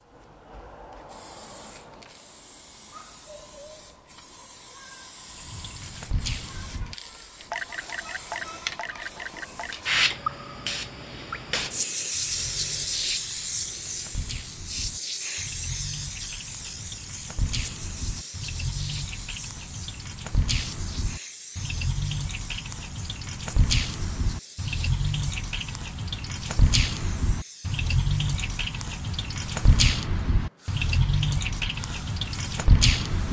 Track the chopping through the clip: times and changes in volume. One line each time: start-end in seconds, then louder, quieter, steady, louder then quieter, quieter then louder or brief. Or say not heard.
not heard.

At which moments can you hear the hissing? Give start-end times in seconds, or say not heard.
0.0-33.2.